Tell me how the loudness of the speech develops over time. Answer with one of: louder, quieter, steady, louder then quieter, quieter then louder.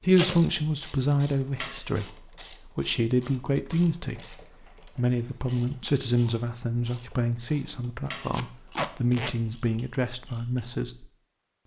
steady.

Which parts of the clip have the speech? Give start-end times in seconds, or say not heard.
0.0-11.1.